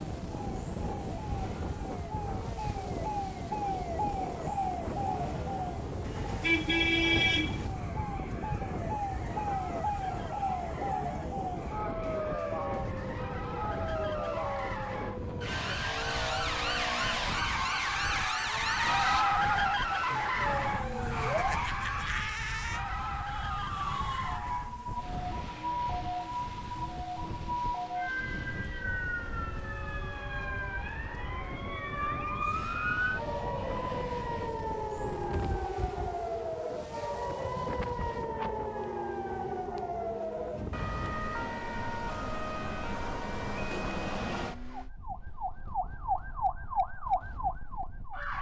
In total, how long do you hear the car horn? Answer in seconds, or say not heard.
2 s.